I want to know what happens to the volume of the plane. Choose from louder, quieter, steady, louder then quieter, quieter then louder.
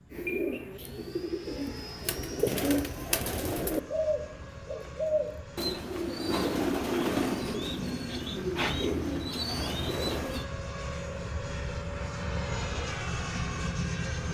louder.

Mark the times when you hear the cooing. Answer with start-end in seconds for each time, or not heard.
0.1-10.4.